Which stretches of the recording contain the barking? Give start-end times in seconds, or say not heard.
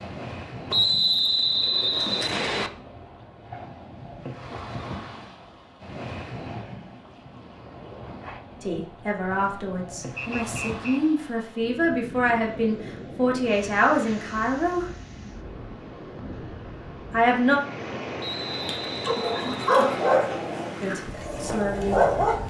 18.6-22.4.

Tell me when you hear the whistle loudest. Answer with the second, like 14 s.
1 s.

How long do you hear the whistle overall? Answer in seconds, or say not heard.
5 s.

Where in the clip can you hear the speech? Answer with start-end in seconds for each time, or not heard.
8.6-14.8, 17.1-17.6, 20.8-22.1.